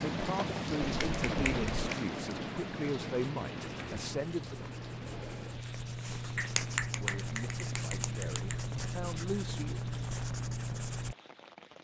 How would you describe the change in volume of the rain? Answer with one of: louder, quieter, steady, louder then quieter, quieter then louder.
quieter.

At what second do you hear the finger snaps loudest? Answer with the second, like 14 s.
7 s.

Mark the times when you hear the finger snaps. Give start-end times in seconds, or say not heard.
0.8-1.9, 6.3-8.6.